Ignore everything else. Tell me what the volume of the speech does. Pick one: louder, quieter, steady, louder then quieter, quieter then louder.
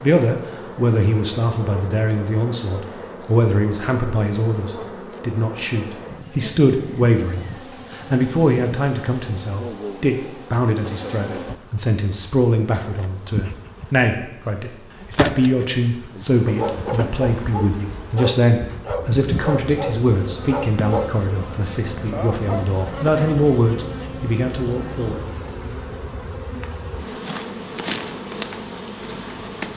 steady.